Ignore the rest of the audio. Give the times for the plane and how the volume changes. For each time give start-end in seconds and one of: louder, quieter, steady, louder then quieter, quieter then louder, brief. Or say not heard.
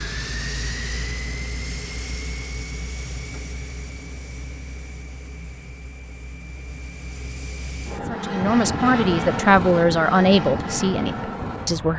0.0-11.9 quieter then louder.